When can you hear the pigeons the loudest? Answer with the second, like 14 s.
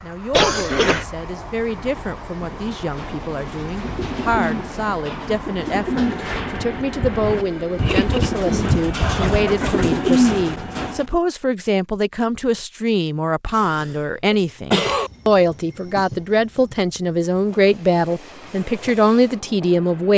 10 s.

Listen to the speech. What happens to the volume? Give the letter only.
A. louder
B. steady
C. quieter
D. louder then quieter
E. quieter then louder
A.